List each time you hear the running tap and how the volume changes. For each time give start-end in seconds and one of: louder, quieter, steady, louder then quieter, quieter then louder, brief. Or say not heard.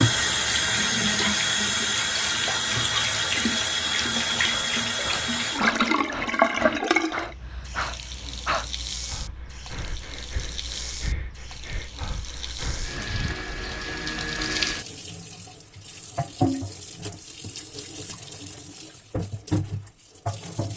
0.0-20.7 quieter then louder.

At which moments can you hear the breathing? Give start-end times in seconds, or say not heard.
4.3-12.9.